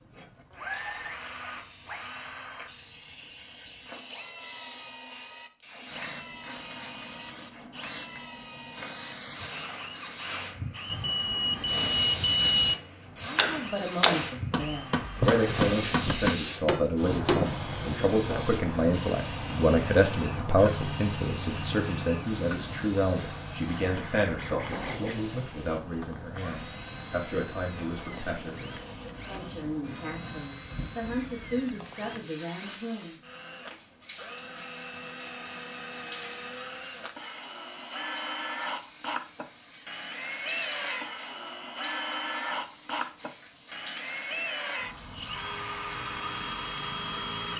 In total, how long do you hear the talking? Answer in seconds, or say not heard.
20 s.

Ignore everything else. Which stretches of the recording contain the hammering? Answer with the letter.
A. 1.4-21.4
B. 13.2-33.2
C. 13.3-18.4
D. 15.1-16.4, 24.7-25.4
C.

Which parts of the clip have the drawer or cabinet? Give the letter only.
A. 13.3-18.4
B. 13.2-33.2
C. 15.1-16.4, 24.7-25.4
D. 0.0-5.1
C.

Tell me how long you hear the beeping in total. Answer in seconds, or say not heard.
3 s.